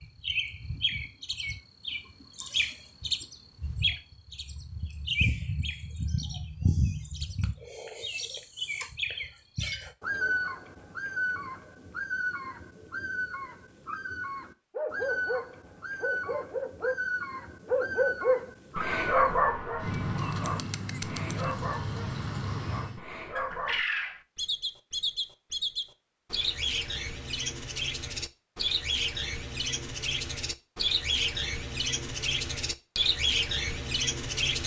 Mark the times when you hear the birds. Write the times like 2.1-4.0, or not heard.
0.0-34.6.